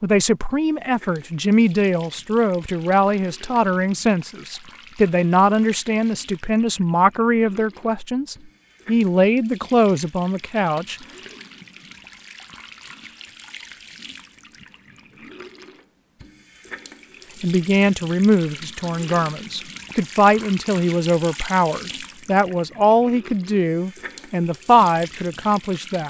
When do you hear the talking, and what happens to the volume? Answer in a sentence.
You can hear the talking from 0.0 to 10.9 s, at a steady volume; and from 17.4 to 26.0 s, at a steady volume.